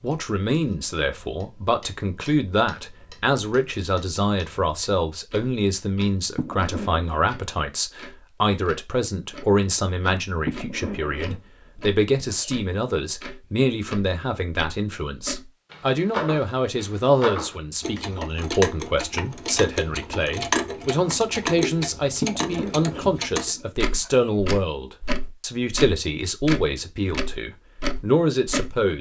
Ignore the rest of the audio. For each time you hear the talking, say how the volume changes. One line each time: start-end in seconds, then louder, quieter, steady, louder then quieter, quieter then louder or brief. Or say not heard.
0.0-28.9 steady.